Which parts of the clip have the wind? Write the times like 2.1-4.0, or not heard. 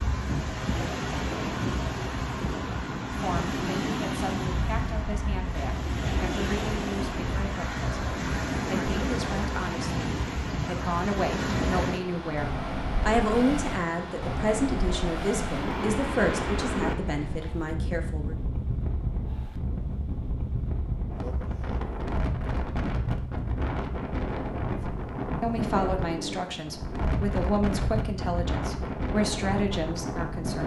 0.0-30.6.